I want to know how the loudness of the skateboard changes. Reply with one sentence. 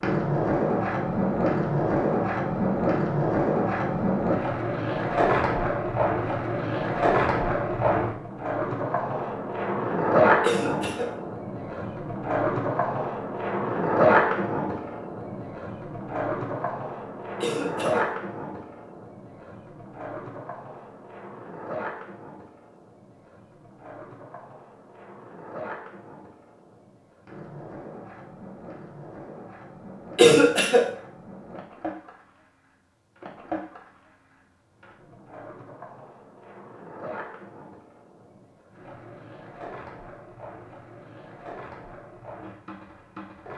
The loudness of the skateboard goes down.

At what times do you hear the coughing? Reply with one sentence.
The coughing can be heard from 10.4 to 11.1 s, from 17.4 to 18.1 s and from 30.1 to 30.9 s.